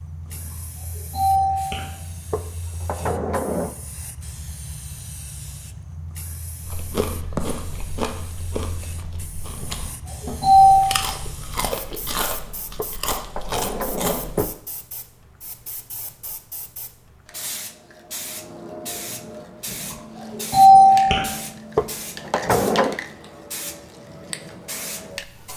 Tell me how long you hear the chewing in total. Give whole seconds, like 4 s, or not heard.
8 s.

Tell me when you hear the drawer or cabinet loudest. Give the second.
23 s.